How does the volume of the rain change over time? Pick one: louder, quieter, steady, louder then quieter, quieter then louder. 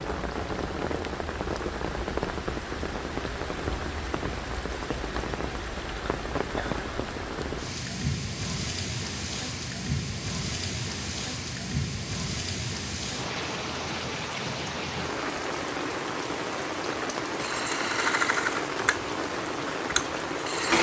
steady.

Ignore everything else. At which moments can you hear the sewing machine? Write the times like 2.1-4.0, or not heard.
17.4-20.7.